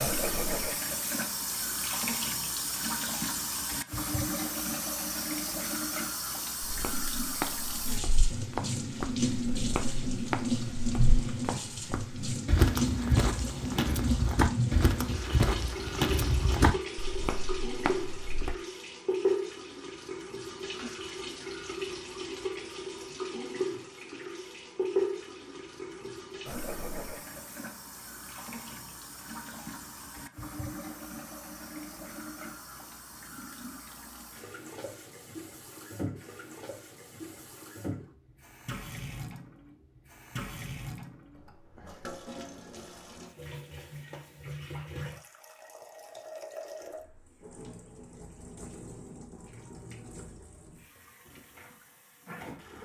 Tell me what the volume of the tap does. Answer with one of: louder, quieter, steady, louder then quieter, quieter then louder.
quieter.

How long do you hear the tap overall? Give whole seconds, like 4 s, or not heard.
53 s.